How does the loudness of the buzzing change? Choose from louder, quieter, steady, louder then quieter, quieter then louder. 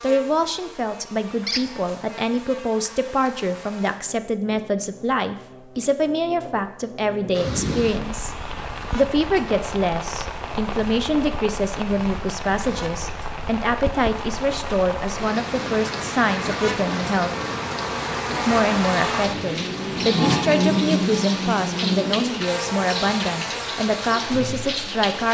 louder.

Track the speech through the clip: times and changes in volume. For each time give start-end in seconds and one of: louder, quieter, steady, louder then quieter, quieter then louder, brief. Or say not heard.
0.0-17.3 steady
18.4-25.2 steady.